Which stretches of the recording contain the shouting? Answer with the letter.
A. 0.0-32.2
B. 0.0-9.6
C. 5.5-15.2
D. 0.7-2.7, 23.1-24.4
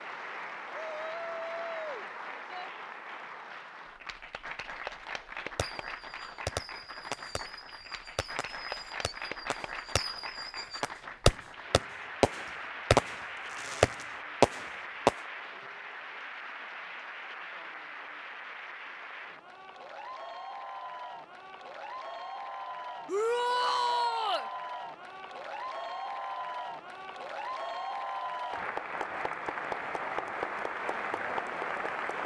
D.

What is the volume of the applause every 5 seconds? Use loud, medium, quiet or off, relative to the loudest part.
medium, medium, medium, medium, medium, loud, loud.